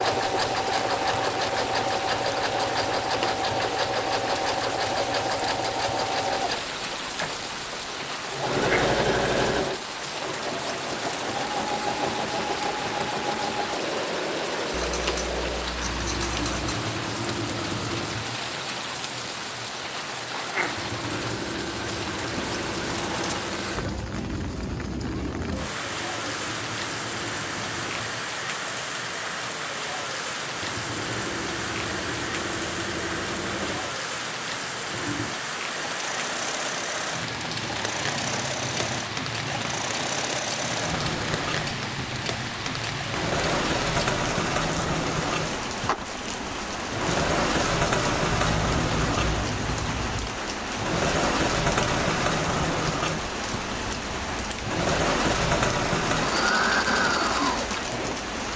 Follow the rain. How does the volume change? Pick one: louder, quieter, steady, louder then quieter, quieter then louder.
steady.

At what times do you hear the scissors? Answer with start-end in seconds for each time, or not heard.
14.7-16.7, 22.3-23.4, 48.5-50.4.